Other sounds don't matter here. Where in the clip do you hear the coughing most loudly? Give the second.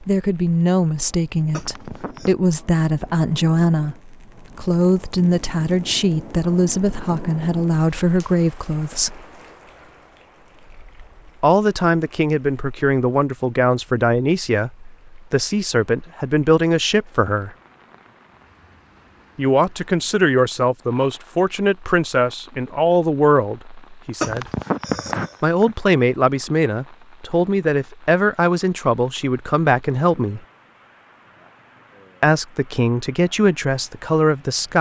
25 s.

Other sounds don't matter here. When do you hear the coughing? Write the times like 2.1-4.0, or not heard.
1.5-2.4, 24.2-25.8.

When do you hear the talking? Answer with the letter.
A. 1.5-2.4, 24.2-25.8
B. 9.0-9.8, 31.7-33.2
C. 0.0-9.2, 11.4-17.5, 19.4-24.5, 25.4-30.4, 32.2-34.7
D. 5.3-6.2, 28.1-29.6
C.